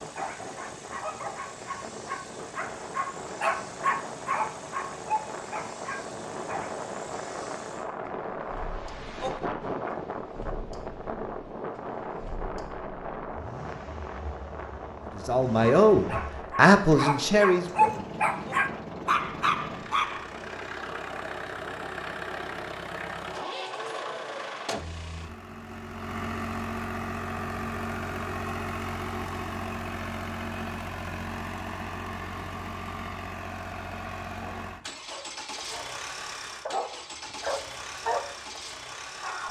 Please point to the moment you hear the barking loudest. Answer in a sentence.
The volume of the barking peaks at 18 seconds.